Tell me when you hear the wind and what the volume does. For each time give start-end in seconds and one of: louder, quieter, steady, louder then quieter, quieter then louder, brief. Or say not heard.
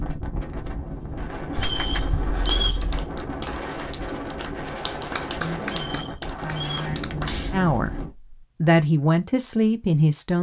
0.0-8.1 steady.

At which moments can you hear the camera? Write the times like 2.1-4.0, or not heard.
1.6-3.1, 6.6-7.5.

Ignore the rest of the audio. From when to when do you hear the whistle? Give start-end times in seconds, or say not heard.
1.6-2.8, 5.8-6.8.